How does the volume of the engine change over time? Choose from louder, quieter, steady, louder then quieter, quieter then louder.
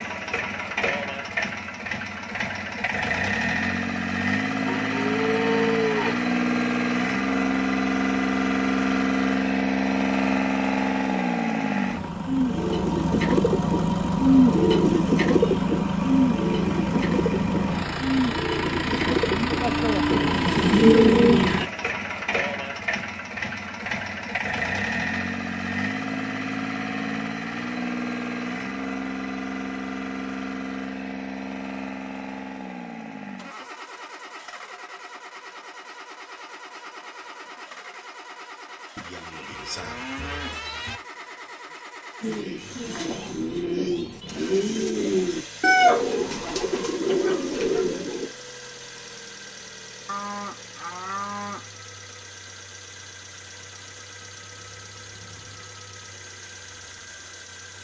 quieter.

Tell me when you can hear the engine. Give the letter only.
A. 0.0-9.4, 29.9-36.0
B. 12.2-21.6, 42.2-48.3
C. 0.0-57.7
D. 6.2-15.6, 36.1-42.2
C.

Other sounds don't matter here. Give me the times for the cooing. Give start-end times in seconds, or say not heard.
12.2-21.6, 42.2-48.3.